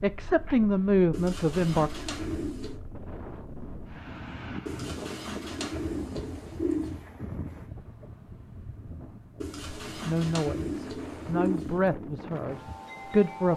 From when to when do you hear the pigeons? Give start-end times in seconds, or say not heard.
1.1-2.8, 4.7-7.0, 9.4-11.8.